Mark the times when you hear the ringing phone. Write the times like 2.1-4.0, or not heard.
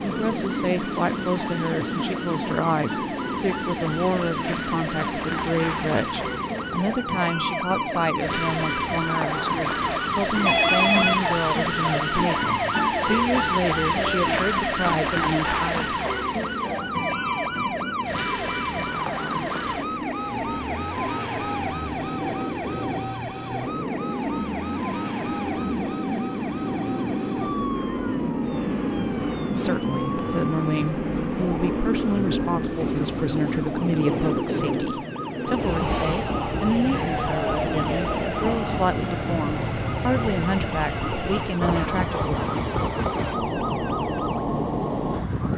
10.4-11.3.